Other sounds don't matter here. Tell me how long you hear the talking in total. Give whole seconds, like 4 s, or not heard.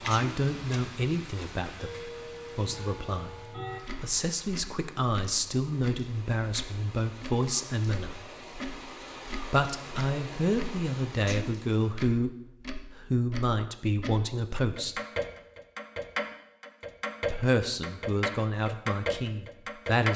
16 s.